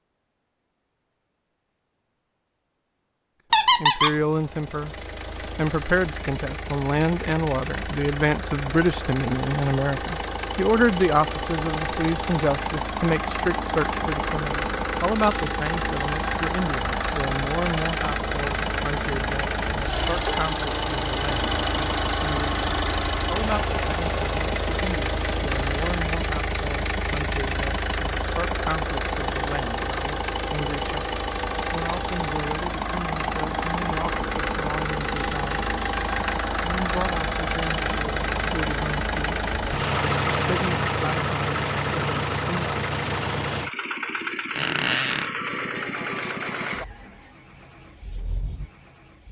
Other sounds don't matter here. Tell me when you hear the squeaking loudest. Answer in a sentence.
The loudest moment of the squeaking is at 4 seconds.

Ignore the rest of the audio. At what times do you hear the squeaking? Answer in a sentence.
The squeaking can be heard from 3.5 to 4.2 s and from 44.5 to 45.3 s.